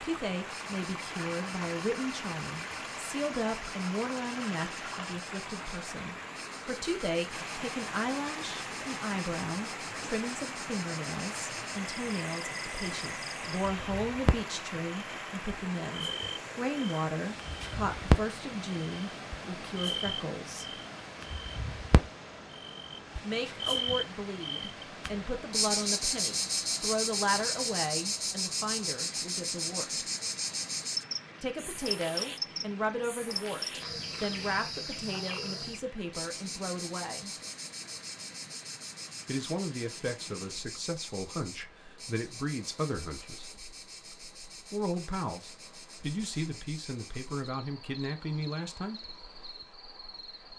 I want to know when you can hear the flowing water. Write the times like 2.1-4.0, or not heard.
0.0-50.5.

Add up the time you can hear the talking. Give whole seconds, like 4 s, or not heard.
42 s.